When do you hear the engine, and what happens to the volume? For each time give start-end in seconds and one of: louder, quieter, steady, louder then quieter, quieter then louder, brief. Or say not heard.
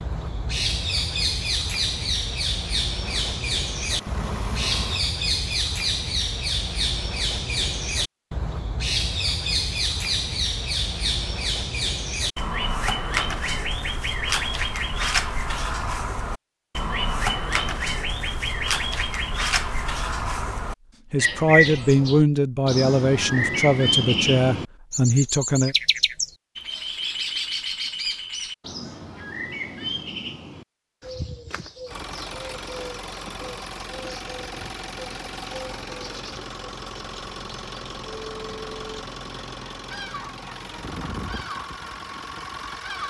3.0-5.0 brief
31.9-43.0 steady.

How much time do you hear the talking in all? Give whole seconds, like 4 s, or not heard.
5 s.